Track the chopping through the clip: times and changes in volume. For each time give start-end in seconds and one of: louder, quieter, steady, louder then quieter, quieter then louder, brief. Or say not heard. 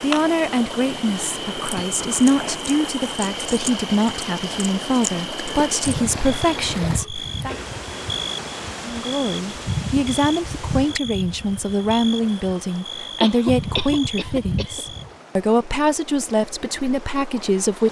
not heard.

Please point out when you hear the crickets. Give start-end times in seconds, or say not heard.
0.0-15.1.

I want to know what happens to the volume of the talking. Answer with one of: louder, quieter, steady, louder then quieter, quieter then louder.
steady.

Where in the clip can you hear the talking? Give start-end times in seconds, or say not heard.
0.0-7.5, 8.8-17.8.